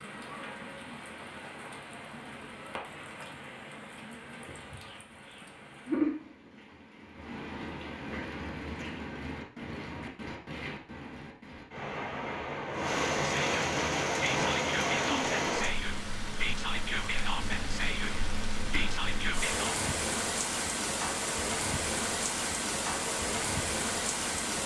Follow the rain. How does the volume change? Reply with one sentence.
The volume of the rain goes up.